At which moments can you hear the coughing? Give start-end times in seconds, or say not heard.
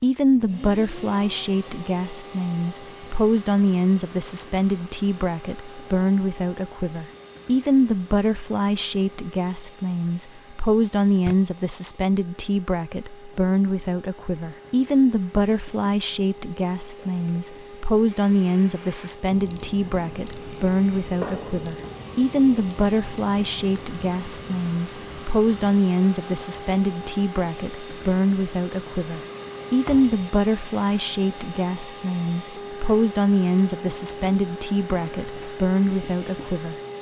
not heard.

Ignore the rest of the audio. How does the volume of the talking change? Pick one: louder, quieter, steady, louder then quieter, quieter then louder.
steady.